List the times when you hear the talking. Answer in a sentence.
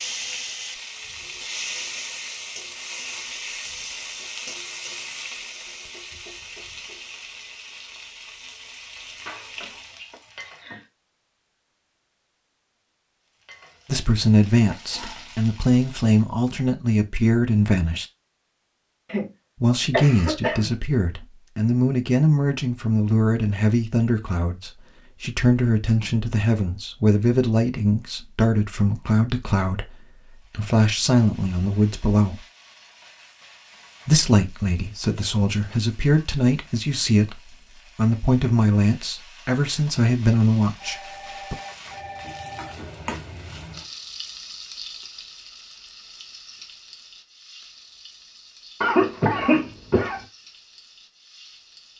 You can hear the talking from 13.8 to 18.1 s, from 19.6 to 32.5 s and from 34.0 to 41.5 s.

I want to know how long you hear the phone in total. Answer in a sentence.
The phone can be heard for 2 seconds in total.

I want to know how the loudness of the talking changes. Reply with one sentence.
The loudness of the talking stays about the same.